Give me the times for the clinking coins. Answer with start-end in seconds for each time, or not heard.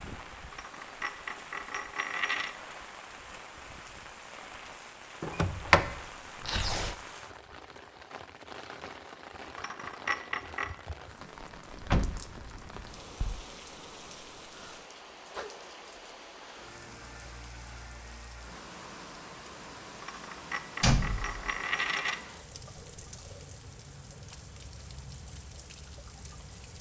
0.5-2.5, 9.6-10.7, 20.0-22.2.